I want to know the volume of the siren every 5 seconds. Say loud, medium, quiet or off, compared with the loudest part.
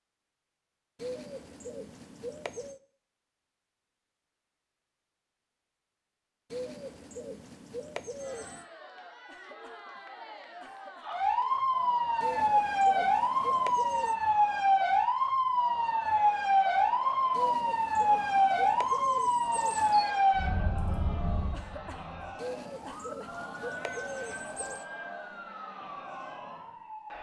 off, off, loud, loud, medium, quiet.